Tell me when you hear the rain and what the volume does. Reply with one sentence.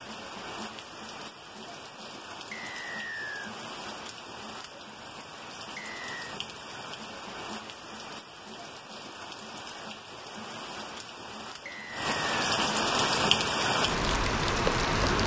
You can hear the rain from 0.0 to 15.2 s, getting louder.